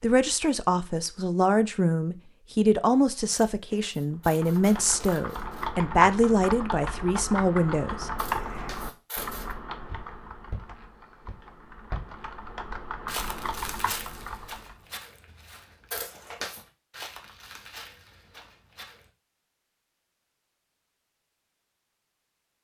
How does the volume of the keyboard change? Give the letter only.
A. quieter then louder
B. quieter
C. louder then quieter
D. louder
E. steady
A.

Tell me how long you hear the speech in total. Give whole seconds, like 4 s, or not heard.
8 s.